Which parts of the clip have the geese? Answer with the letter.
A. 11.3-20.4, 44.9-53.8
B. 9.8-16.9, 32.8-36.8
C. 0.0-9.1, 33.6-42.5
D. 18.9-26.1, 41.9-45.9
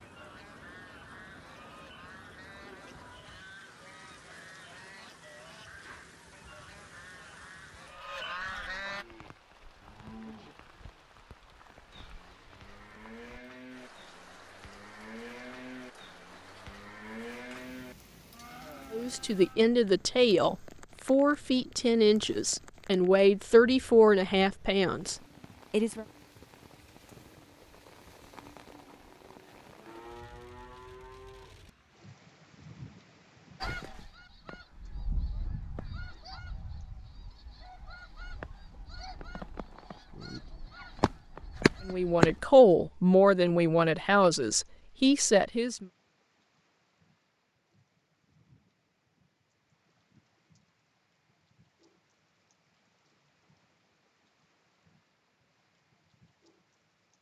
C.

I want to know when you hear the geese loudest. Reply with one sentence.
The loudest moment of the geese is at 42 seconds.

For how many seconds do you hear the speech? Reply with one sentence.
You can hear the speech for 11 seconds altogether.